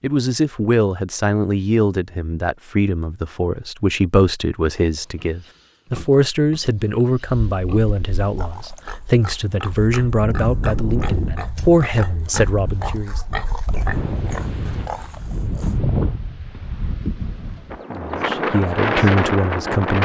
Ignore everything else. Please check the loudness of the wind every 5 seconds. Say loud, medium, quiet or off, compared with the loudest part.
off, quiet, medium, loud.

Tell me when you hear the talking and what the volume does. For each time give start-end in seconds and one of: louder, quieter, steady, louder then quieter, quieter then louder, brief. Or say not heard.
0.0-13.2 steady
17.9-20.0 brief.